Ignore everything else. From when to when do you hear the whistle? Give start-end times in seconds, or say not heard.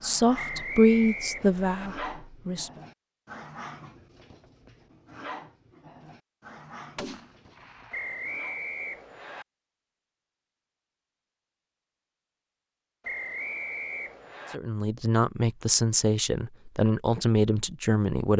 0.3-1.9, 7.9-9.4, 13.0-14.6.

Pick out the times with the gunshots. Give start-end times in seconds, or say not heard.
7.0-8.2.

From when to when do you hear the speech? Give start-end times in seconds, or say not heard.
0.0-2.7, 14.5-18.3.